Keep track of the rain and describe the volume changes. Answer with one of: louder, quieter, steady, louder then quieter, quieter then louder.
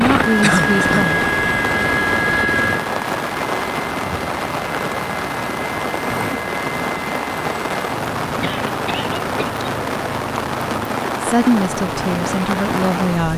steady.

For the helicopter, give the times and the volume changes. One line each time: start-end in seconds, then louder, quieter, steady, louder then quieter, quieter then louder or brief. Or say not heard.
0.0-13.3 quieter.